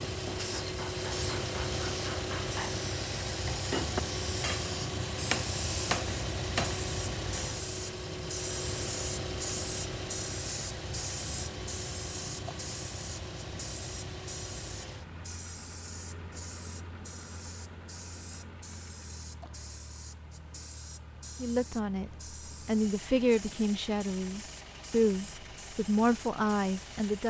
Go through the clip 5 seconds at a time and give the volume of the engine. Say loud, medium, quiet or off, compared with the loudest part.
loud, loud, medium, quiet, quiet, quiet.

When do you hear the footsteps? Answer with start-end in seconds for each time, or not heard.
not heard.